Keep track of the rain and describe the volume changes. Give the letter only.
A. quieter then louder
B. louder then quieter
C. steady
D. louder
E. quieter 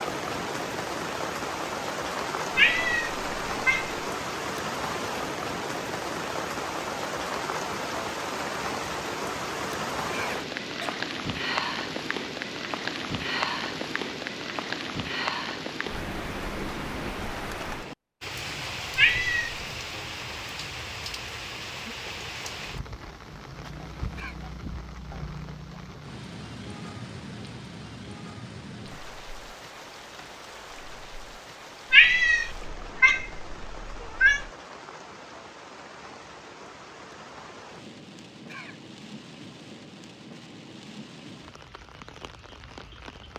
E.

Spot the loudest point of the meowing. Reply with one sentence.
The loudest moment of the meowing is at 32 seconds.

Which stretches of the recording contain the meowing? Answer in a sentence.
The meowing can be heard from 2.5 to 3.9 s, from 18.9 to 19.6 s and from 31.9 to 34.5 s.